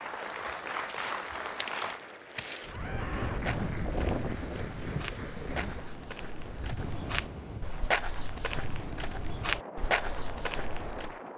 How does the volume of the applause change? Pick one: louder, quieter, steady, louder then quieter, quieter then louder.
quieter.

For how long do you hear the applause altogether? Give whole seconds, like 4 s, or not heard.
6 s.